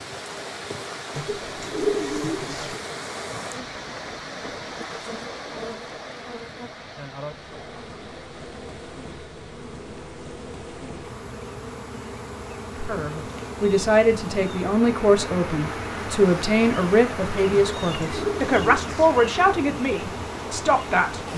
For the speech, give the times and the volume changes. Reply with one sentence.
You can hear the speech from 12.8 to 21.3 s, at a steady volume.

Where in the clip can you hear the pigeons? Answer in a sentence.
You can hear the pigeons from 1.1 to 2.8 s and from 17.5 to 19.2 s.